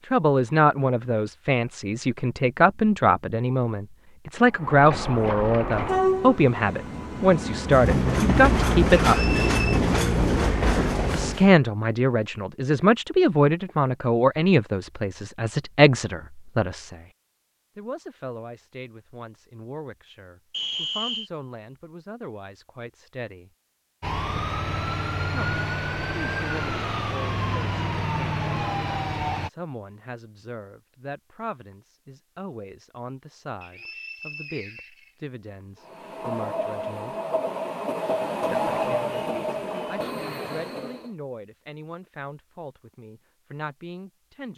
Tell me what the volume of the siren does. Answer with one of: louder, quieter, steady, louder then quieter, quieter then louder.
steady.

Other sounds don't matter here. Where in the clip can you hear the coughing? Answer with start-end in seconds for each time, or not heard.
not heard.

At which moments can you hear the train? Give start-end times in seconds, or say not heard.
4.5-11.5, 35.8-41.1.